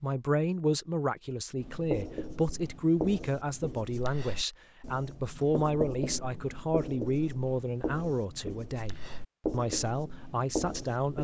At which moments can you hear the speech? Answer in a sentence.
The speech can be heard from 0.0 to 11.1 s.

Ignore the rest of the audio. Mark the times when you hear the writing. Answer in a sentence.
The writing can be heard from 1.6 to 11.1 s.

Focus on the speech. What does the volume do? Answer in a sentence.
The loudness of the speech stays about the same.